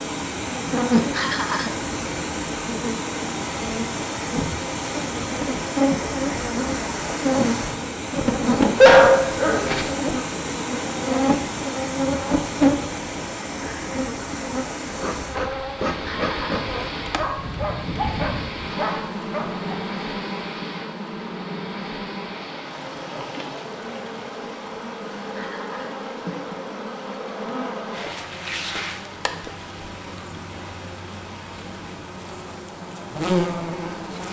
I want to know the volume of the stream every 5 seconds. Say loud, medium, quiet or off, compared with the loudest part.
loud, loud, loud, medium, medium, quiet, quiet.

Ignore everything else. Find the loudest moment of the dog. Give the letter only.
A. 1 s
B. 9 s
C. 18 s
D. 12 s
B.